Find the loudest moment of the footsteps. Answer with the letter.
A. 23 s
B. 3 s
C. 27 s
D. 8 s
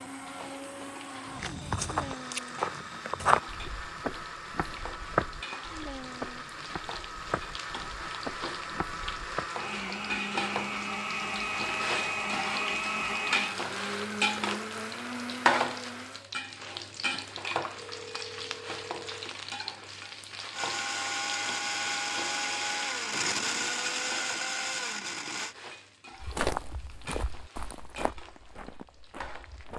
B.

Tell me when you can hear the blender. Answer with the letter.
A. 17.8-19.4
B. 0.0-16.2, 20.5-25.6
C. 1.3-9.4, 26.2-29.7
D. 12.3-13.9
B.